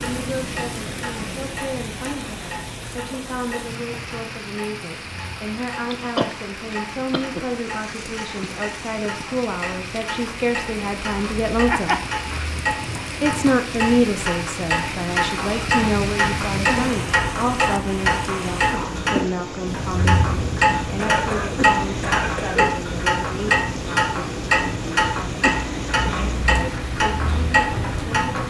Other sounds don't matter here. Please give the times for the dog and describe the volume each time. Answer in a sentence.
The dog can't be heard in this clip.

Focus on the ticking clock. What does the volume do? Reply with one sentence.
The loudness of the ticking clock goes up.